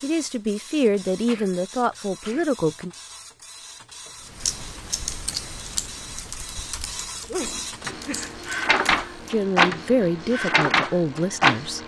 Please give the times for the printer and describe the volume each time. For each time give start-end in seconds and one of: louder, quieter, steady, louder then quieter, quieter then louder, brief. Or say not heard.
0.0-11.8 louder.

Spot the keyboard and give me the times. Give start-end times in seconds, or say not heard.
4.2-9.4.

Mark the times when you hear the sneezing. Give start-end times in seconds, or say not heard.
1.1-2.5, 7.2-8.4.